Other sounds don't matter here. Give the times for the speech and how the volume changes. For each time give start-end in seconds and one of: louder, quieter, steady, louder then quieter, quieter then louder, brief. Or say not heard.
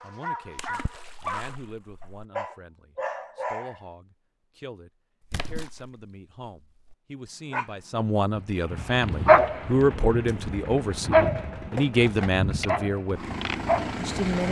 0.0-13.3 louder
13.9-14.4 brief.